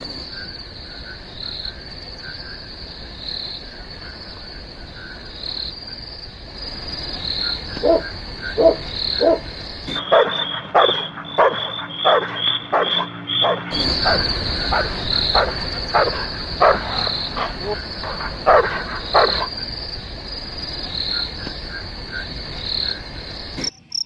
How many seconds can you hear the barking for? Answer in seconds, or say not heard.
12 s.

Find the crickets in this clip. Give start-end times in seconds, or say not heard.
0.0-24.0.